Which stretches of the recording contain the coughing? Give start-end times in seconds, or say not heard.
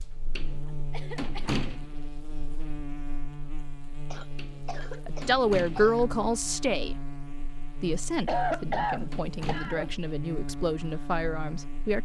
0.7-1.6, 4.1-6.1, 8.2-9.9.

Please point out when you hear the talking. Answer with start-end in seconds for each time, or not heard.
5.0-7.0, 7.8-12.0.